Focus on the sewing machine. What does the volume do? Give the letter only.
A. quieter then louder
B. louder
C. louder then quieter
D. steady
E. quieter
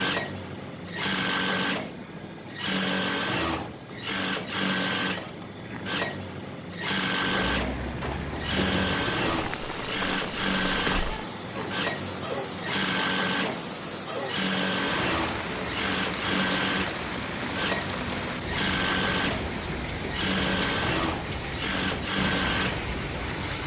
D.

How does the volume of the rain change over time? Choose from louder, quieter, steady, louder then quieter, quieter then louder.
steady.